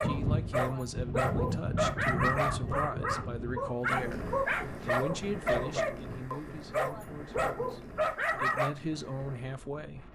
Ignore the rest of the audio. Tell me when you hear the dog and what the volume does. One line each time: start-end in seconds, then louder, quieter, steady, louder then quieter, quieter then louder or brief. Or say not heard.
0.0-8.8 steady.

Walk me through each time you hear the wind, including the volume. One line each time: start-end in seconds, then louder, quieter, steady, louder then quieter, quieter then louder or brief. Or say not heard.
0.0-10.1 quieter.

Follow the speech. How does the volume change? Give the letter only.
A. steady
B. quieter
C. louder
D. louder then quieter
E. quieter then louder
E.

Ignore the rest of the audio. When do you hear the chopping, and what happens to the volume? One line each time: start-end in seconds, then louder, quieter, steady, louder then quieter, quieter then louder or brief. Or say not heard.
not heard.